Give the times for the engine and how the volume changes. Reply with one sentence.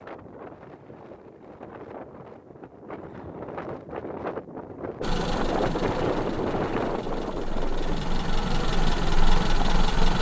The engine can be heard from 5.0 to 10.1 s, getting quieter then louder.